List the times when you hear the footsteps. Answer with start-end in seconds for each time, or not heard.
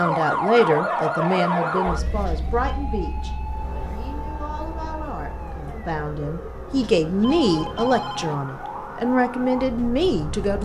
not heard.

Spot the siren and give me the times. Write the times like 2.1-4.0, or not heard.
0.0-10.5.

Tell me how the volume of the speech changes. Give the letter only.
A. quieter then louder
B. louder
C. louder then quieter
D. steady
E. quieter
A.